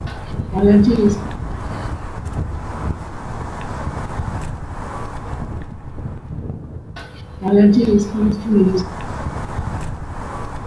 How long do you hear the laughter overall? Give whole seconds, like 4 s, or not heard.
3 s.